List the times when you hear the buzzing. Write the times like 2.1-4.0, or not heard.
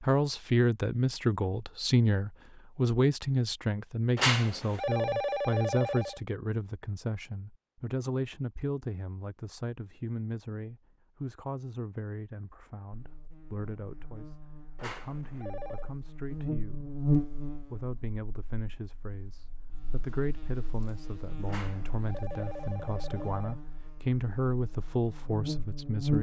12.9-26.1.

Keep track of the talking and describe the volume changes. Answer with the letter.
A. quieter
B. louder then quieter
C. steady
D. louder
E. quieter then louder
E.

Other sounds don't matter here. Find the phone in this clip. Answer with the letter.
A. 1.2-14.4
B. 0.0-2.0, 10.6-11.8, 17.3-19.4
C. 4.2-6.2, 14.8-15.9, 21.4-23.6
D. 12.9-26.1
C.